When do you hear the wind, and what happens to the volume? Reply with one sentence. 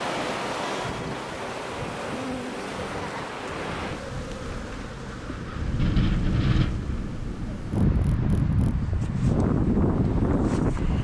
The wind can be heard from 0.0 to 10.9 s, getting louder.